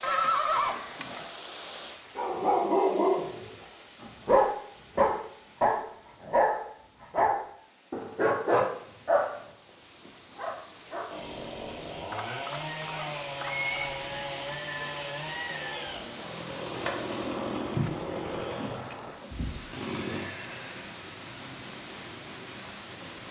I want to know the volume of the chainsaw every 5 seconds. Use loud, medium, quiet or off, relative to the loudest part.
off, off, loud, loud, medium.